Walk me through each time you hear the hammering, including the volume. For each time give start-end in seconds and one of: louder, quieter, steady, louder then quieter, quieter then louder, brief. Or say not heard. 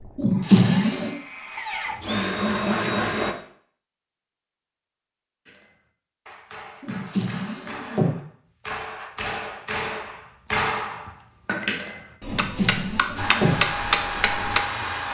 5.5-14.6 louder.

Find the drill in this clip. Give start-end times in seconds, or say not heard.
0.0-3.4, 13.2-15.0.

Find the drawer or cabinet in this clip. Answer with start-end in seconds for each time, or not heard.
0.1-1.1, 6.8-8.2, 12.2-13.6.